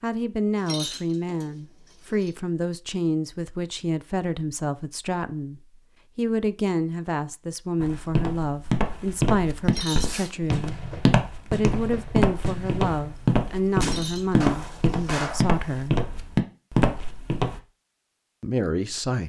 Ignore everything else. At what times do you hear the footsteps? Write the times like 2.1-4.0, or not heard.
7.8-17.6.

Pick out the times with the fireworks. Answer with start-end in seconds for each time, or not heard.
9.9-13.2, 13.8-15.8.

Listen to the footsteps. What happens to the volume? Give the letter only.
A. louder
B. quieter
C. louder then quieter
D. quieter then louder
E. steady
E.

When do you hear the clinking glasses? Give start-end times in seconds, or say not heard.
0.6-2.3, 9.7-10.2, 13.8-14.4.